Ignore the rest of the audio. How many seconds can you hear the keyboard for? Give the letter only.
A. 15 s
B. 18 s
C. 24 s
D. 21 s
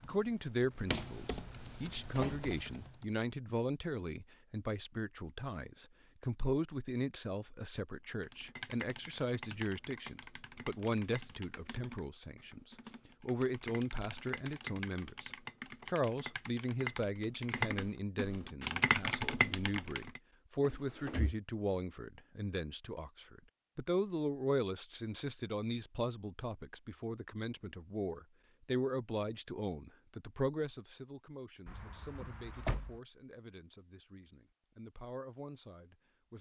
A.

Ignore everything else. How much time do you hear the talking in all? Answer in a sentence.
You can hear the talking for 36 seconds altogether.